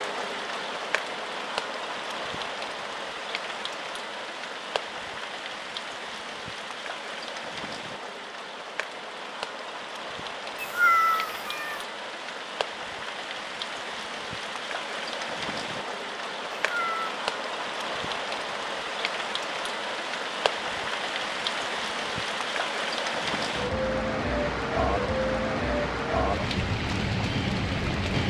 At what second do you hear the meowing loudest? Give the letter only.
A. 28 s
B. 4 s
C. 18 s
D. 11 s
D.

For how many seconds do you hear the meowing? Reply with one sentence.
You can hear the meowing for 2 seconds altogether.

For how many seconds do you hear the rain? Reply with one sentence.
You can hear the rain for 28 seconds altogether.